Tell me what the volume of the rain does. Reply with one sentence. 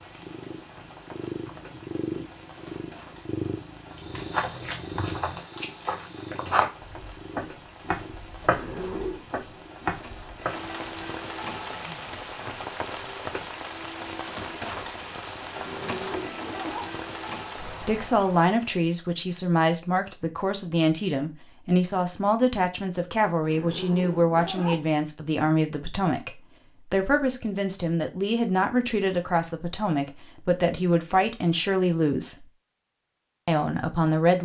The volume of the rain goes up.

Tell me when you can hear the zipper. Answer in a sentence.
You can hear the zipper from 8.4 to 9.2 s, from 15.5 to 16.9 s and from 23.4 to 24.9 s.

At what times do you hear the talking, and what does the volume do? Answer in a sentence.
The talking can be heard from 17.8 to 32.5 s, at a steady volume; and briefly from 33.5 to 34.4 s.